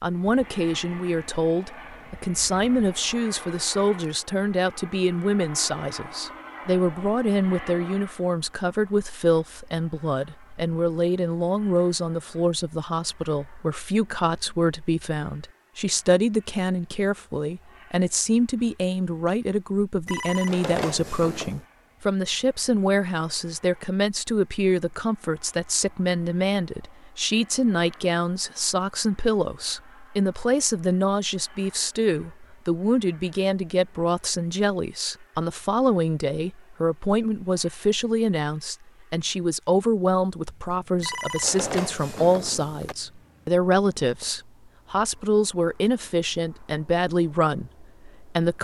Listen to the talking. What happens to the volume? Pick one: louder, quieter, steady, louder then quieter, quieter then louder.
steady.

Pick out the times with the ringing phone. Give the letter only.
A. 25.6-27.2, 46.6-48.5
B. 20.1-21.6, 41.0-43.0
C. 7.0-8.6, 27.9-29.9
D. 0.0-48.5
B.